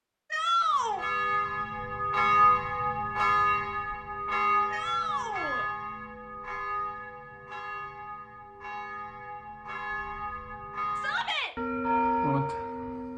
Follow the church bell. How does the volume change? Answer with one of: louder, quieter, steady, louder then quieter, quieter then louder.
quieter then louder.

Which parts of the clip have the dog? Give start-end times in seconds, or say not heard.
not heard.